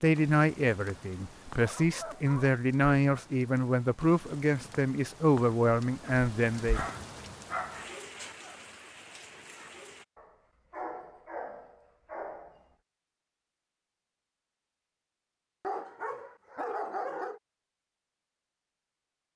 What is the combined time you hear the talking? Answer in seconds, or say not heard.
7 s.